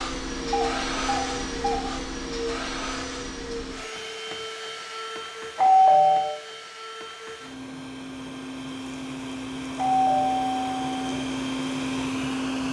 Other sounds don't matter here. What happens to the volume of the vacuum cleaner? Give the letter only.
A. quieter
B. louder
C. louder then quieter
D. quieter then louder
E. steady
D.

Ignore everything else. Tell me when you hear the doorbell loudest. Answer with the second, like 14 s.
6 s.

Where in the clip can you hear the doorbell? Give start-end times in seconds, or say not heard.
0.5-1.8, 5.5-6.2, 9.8-10.8.